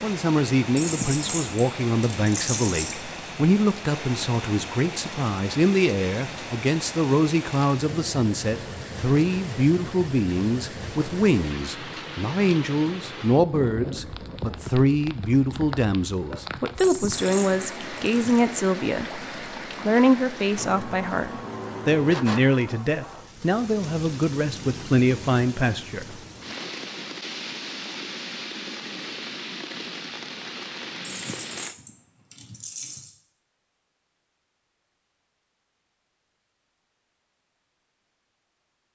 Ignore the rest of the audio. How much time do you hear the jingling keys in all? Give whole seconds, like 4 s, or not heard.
6 s.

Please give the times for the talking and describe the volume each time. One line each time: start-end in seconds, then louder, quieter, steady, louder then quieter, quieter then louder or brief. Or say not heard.
0.0-26.1 steady.